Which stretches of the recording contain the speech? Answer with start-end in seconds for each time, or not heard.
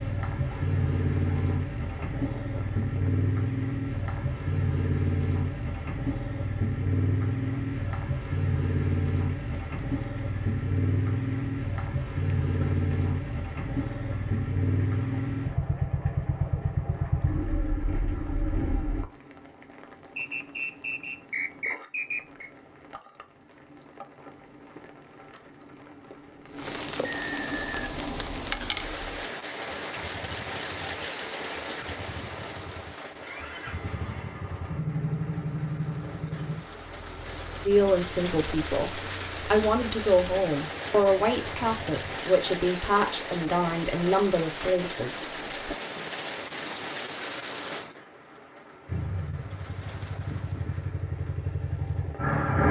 37.6-45.8.